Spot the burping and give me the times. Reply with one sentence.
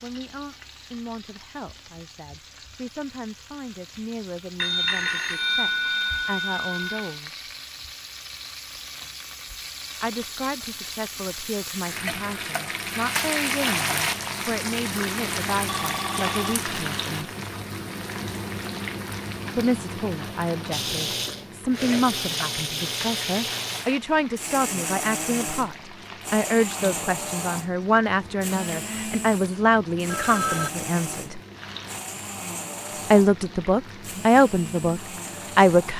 You can't hear the burping here.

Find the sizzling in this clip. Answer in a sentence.
You can hear the sizzling from 0.0 to 35.9 s.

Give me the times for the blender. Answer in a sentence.
The blender can be heard from 20.7 to 35.9 s.